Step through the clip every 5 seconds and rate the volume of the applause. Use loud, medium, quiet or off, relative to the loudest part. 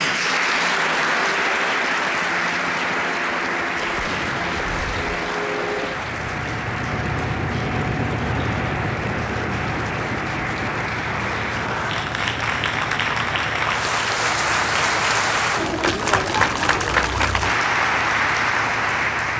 loud, medium, loud, loud.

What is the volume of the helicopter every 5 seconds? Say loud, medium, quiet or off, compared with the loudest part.
medium, loud, medium, medium.